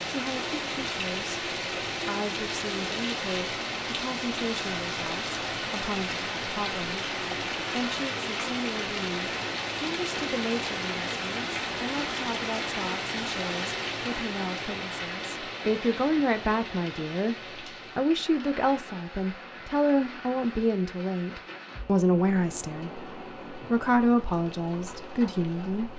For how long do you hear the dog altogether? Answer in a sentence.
The dog can't be heard in this clip.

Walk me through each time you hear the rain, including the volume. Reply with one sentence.
You can hear the rain from 0.0 to 25.9 s, getting quieter.